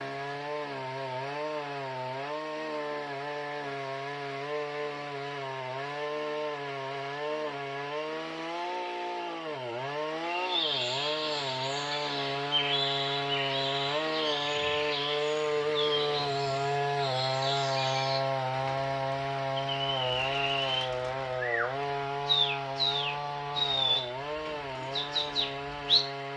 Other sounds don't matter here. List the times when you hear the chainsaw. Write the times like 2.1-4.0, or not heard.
0.0-26.3.